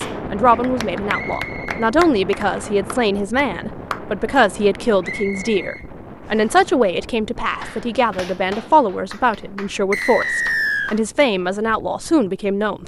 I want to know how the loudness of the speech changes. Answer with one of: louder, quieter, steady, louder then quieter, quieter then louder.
steady.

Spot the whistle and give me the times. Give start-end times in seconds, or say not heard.
1.1-1.8, 5.0-6.5, 9.9-10.9.